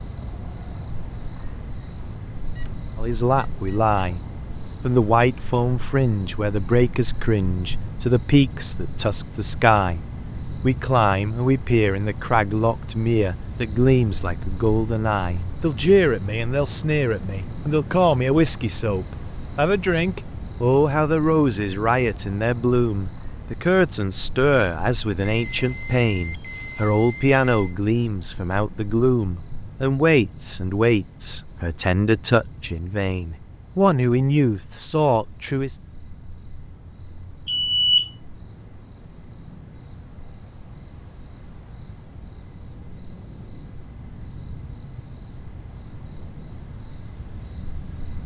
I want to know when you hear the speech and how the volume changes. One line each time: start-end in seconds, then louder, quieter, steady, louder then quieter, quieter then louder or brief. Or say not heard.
3.0-35.8 steady.